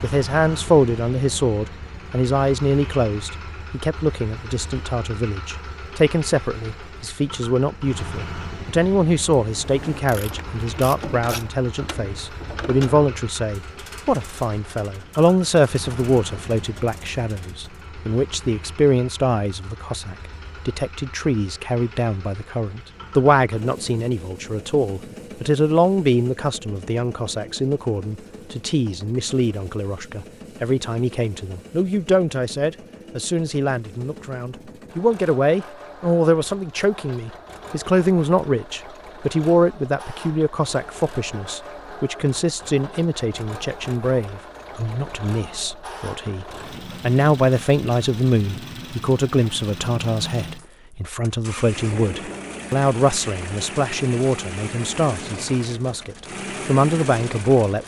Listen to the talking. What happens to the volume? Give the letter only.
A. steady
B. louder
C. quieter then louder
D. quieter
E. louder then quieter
A.